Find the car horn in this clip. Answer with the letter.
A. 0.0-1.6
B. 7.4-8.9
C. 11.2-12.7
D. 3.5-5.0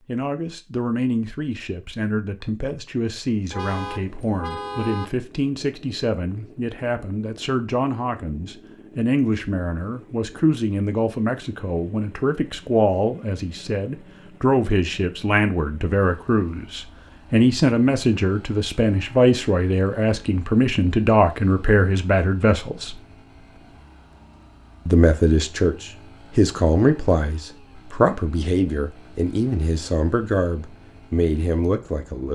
D.